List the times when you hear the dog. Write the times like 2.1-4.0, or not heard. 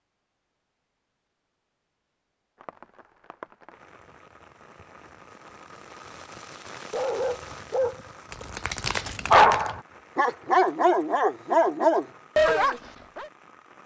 6.9-13.2.